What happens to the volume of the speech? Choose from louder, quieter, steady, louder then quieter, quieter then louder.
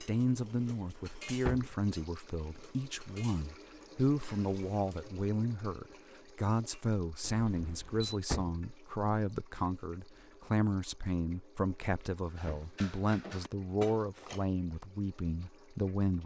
steady.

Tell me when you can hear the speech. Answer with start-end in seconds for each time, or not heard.
0.0-16.2.